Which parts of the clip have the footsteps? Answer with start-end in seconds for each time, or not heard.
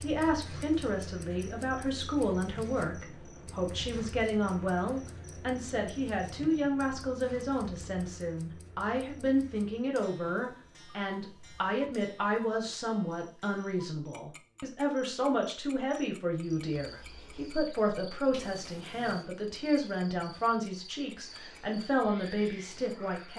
not heard.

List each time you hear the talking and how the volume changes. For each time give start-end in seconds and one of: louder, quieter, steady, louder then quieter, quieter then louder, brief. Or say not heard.
0.0-23.3 steady.